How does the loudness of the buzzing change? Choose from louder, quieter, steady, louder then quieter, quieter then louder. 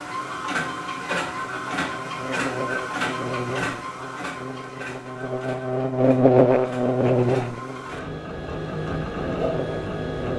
louder then quieter.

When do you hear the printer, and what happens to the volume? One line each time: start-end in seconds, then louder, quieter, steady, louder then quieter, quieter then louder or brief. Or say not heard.
0.0-10.3 quieter then louder.